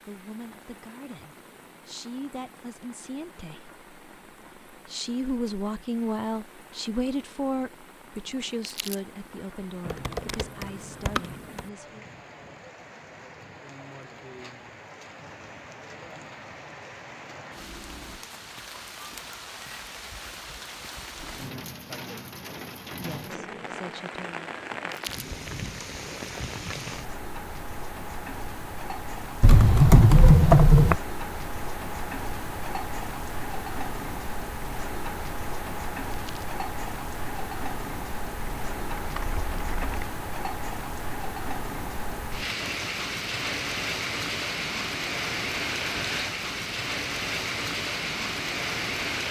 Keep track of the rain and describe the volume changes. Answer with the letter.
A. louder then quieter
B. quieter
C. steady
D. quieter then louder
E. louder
E.